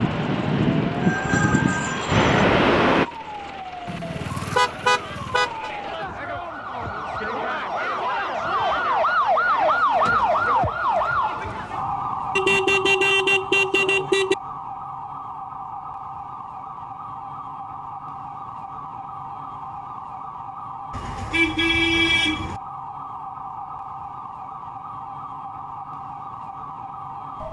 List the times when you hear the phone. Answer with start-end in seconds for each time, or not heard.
1.0-2.5.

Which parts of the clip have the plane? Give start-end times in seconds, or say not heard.
0.0-3.0.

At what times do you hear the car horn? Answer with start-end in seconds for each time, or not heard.
3.9-5.7, 12.3-14.3, 20.9-22.6.